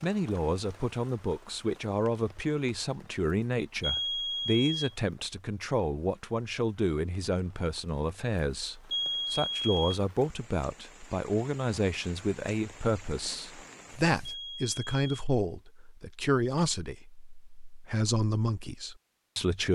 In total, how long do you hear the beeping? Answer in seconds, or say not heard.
3 s.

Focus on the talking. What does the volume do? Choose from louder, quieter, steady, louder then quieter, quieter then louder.
steady.